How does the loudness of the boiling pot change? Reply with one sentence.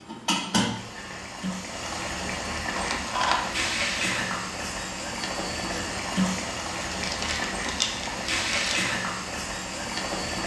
The loudness of the boiling pot stays about the same.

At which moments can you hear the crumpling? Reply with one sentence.
You can hear the crumpling from 2.8 to 3.4 s and from 6.9 to 8.8 s.